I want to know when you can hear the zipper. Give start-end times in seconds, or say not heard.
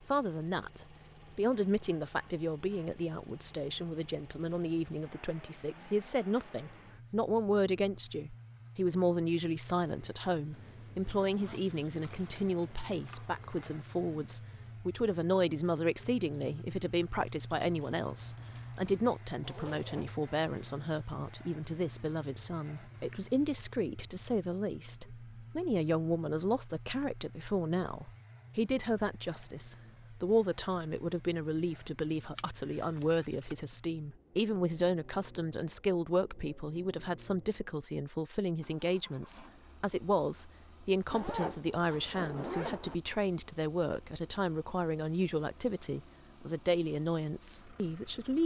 10.5-12.5, 19.4-20.1, 41.1-43.0.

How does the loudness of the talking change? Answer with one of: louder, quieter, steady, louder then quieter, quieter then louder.
steady.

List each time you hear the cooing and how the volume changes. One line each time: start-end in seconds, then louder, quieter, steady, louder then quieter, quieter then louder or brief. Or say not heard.
not heard.